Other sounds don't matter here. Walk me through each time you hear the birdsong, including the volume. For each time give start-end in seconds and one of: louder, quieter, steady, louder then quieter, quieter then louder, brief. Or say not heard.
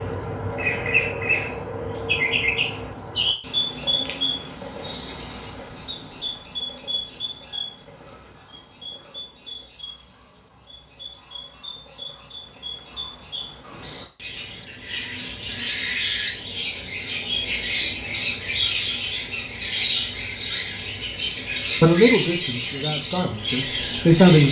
0.0-24.4 quieter then louder.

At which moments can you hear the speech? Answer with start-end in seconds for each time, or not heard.
21.8-24.4.